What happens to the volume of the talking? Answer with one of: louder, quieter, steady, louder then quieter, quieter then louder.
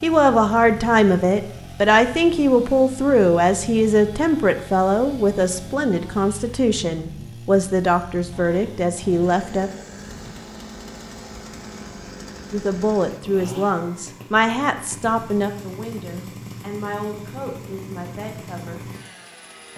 quieter.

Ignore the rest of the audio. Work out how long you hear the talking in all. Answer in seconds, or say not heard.
16 s.